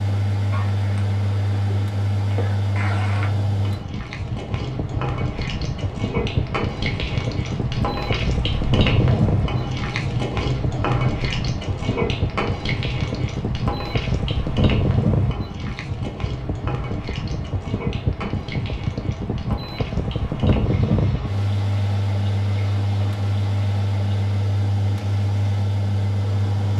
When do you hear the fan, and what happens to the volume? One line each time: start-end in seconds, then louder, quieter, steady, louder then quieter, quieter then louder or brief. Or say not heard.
0.0-26.7 steady.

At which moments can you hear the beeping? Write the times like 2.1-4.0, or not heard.
not heard.